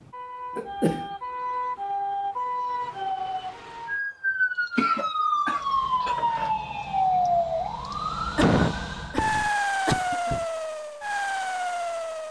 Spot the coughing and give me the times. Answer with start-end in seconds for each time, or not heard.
0.6-1.1, 4.8-6.5, 8.3-10.4.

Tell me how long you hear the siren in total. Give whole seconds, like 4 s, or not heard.
12 s.